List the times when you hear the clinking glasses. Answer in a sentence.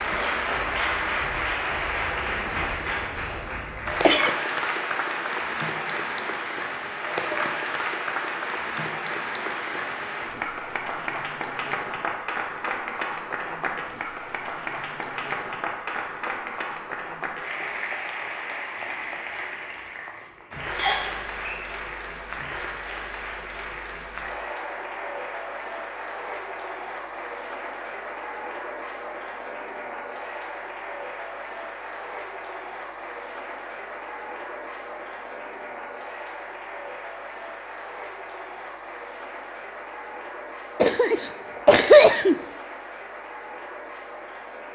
The clinking glasses can't be heard in this clip.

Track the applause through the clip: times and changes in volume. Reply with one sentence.
You can hear the applause from 0.0 to 44.7 s, getting quieter.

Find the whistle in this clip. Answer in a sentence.
The whistle can be heard from 20.8 to 21.6 s.